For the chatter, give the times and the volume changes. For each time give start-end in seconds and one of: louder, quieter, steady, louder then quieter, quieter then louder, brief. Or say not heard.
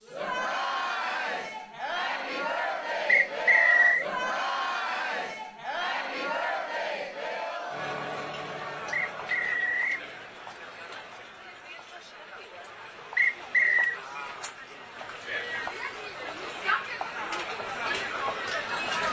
0.0-19.0 quieter then louder.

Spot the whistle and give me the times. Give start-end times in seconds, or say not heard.
3.0-4.0, 8.9-10.1, 13.2-14.0.